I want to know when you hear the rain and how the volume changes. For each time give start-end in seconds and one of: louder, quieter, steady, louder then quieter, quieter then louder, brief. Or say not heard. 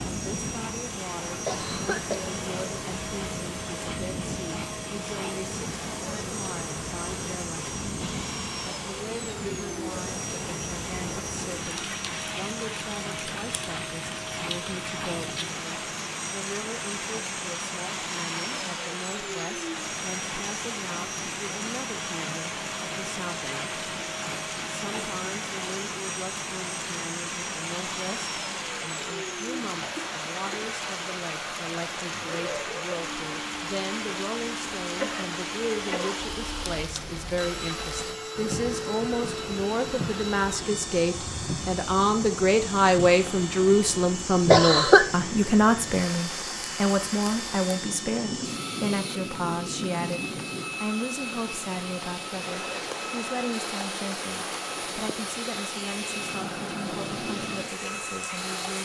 0.0-58.8 steady.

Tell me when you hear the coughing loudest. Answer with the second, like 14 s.
45 s.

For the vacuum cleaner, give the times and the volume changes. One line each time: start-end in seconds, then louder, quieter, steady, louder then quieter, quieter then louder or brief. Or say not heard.
0.0-58.8 steady.